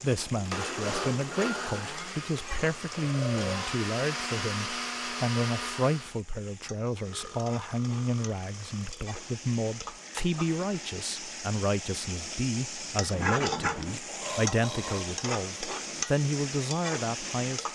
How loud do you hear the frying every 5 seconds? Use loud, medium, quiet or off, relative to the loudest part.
medium, medium, loud, loud.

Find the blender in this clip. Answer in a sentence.
You can hear the blender from 0.0 to 6.2 s.